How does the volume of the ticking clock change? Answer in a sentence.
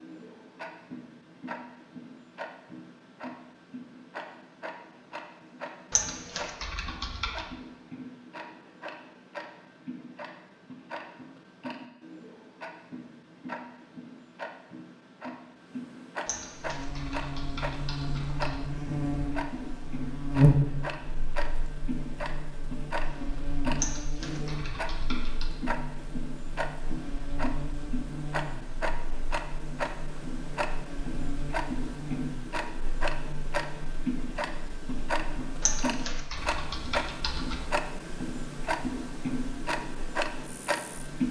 The volume of the ticking clock goes up.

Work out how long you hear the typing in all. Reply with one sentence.
You can hear the typing for 8 seconds altogether.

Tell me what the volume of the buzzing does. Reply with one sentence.
The volume of the buzzing goes down.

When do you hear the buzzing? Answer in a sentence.
The buzzing can be heard from 16.6 to 41.2 s.